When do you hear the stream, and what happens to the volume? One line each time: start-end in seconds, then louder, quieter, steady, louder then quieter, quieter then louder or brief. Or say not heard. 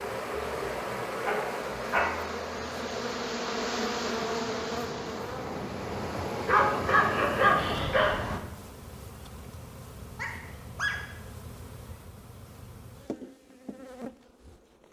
0.0-8.4 quieter then louder.